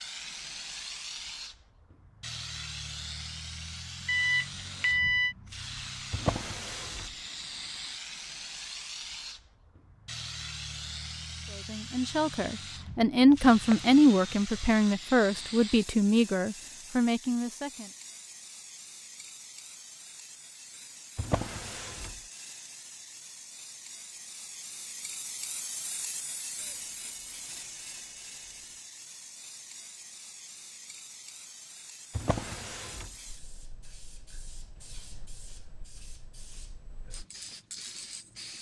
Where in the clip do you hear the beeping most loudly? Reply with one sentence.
The volume of the beeping peaks at 5 seconds.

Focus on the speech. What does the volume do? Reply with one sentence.
The volume of the speech goes up, then down.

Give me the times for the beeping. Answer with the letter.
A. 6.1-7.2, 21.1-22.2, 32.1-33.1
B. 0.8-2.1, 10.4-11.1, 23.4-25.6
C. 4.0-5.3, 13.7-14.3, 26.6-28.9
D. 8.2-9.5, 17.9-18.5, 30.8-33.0
C.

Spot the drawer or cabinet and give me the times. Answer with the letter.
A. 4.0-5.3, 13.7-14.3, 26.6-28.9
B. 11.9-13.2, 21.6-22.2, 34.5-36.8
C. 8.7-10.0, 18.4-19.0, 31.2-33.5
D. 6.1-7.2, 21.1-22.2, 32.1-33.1
D.